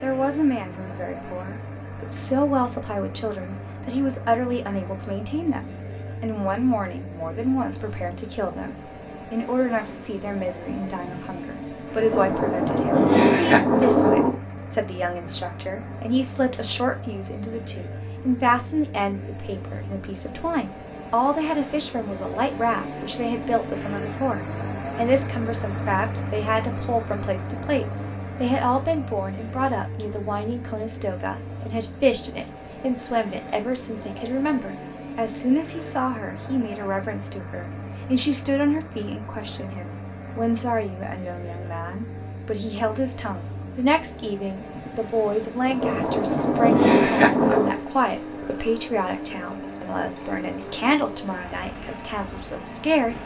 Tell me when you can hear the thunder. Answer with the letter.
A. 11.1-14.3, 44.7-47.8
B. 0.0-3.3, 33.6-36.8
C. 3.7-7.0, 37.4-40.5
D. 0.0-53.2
A.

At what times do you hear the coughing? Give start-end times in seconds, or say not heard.
not heard.